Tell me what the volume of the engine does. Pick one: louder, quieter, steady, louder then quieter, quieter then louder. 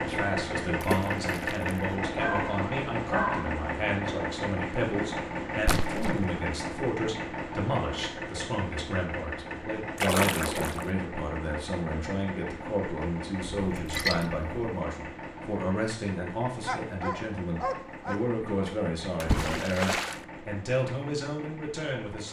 quieter.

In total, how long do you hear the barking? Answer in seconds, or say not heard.
3 s.